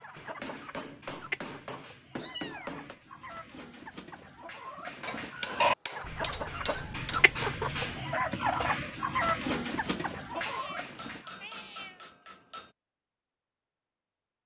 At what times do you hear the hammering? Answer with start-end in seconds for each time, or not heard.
0.1-3.0, 5.0-7.3, 10.9-12.8.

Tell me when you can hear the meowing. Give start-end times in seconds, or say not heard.
2.1-3.0, 6.0-8.1, 10.3-12.1.